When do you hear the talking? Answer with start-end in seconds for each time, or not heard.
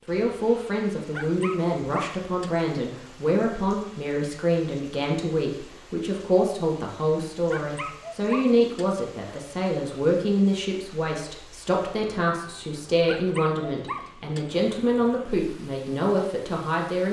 0.1-17.0.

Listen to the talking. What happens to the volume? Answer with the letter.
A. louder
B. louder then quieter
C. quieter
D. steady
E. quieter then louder
D.